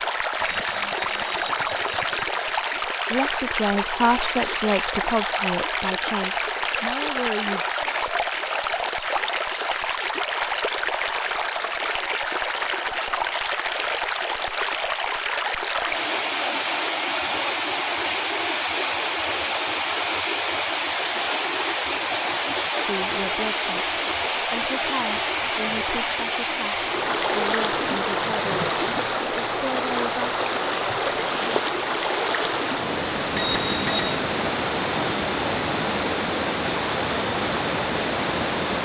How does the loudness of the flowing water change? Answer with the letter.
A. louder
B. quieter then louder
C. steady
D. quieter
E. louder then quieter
C.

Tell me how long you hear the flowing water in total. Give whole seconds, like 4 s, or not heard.
39 s.